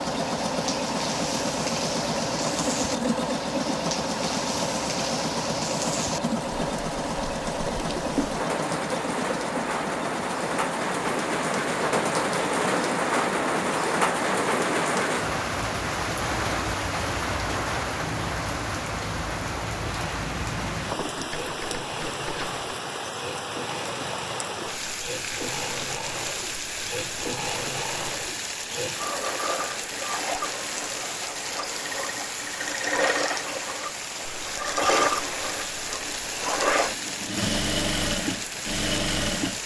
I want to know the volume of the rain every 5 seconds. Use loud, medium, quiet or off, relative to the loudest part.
medium, medium, loud, loud, medium, medium, medium, medium.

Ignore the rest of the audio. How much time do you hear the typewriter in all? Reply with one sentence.
You can hear the typewriter for 2 seconds altogether.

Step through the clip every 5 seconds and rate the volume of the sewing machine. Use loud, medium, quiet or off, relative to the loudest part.
loud, loud, medium, medium, medium, medium, loud, loud.